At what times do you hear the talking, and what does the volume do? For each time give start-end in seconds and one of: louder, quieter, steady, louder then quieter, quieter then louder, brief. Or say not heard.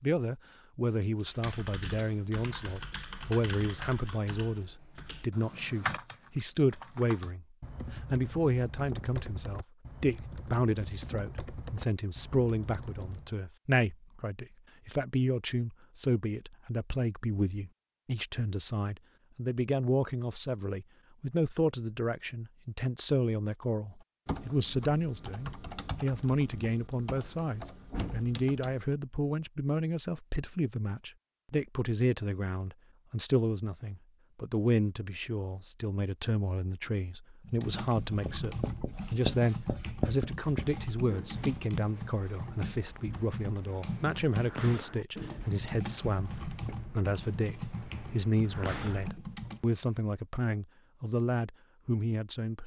0.0-52.6 steady.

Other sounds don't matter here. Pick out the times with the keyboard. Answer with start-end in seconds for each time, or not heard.
1.1-13.3, 24.2-28.9, 37.4-49.6.